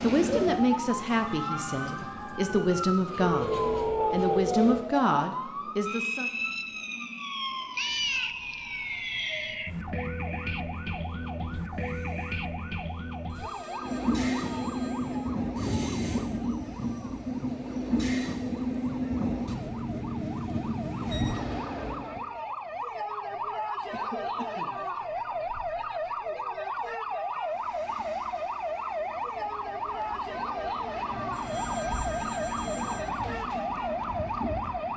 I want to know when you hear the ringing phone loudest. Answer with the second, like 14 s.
4 s.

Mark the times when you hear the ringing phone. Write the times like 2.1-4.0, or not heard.
3.2-4.8, 13.3-15.3, 31.0-33.0.